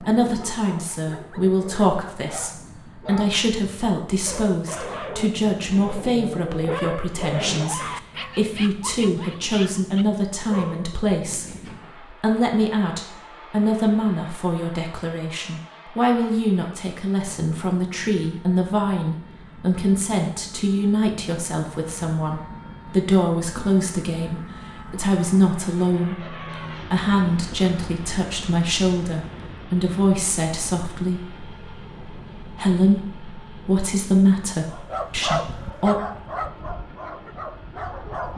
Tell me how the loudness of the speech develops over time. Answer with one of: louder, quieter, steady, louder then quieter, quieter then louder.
steady.